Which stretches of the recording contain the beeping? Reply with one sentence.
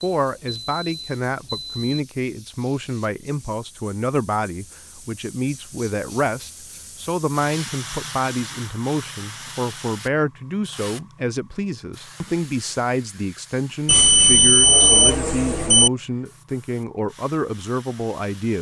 You can hear the beeping from 0.1 to 1.9 s and from 13.8 to 15.9 s.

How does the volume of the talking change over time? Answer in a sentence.
The loudness of the talking stays about the same.